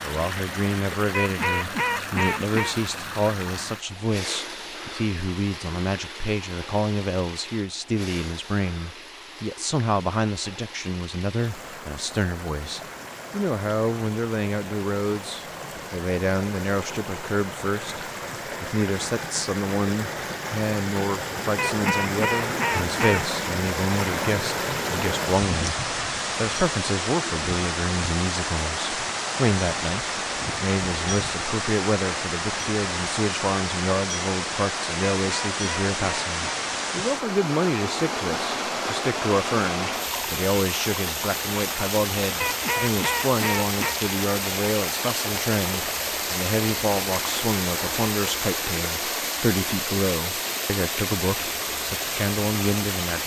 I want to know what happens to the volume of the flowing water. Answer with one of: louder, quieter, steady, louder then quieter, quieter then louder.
louder.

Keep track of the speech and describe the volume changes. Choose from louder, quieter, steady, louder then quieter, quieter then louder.
steady.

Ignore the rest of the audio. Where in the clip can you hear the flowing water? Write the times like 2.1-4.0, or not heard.
0.0-53.2.